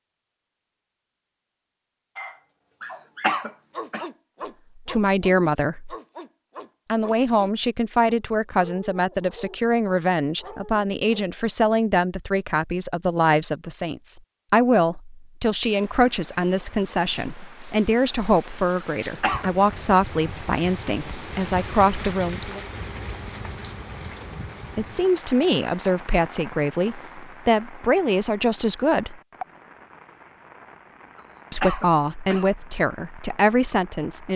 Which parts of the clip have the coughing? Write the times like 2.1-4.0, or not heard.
2.8-4.0, 18.8-19.5, 31.1-32.5.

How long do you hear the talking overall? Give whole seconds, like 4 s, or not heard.
24 s.